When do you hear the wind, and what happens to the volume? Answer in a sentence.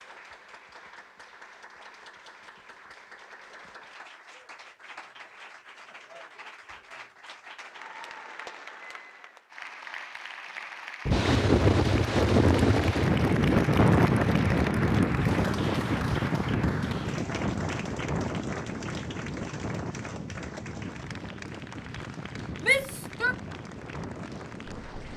The wind can be heard from 11.1 to 25.1 s, getting quieter.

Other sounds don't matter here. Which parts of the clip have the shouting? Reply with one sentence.
The shouting can be heard from 22.6 to 23.4 s.